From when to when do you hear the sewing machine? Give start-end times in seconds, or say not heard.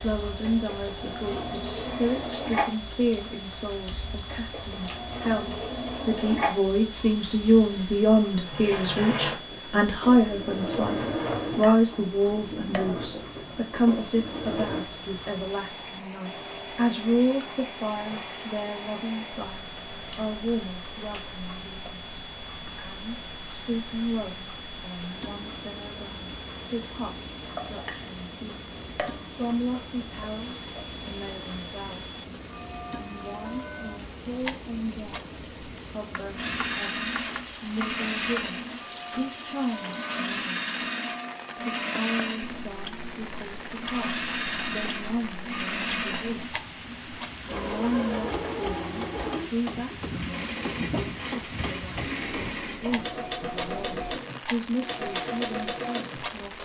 0.1-14.8, 36.3-56.6.